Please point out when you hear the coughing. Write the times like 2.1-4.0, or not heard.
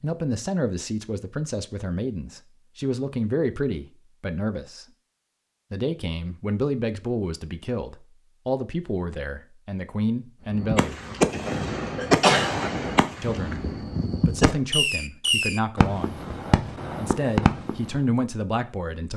11.9-12.6.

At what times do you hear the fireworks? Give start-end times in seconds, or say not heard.
10.6-18.0.